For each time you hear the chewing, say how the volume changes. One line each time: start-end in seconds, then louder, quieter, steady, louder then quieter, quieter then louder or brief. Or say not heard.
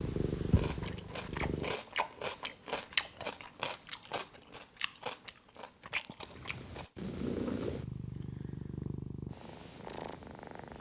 0.5-6.9 louder then quieter.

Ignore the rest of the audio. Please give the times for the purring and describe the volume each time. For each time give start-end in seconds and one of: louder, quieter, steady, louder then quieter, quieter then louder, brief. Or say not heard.
0.0-1.8 brief
6.2-10.7 quieter.